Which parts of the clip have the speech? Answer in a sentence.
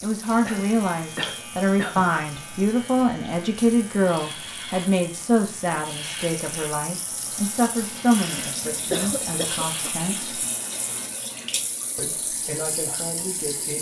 You can hear the speech from 0.0 to 10.3 s and from 11.9 to 13.7 s.